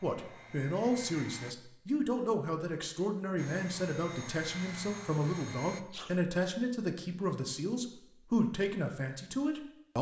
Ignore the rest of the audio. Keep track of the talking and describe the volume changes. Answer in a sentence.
The volume of the talking stays about the same.